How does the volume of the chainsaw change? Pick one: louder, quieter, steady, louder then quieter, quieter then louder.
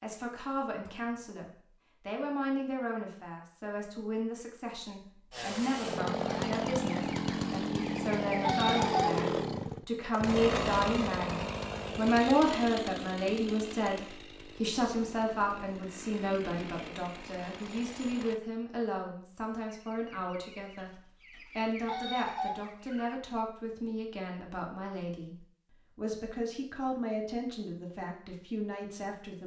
quieter.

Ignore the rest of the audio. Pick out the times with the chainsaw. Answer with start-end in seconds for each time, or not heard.
5.3-18.4.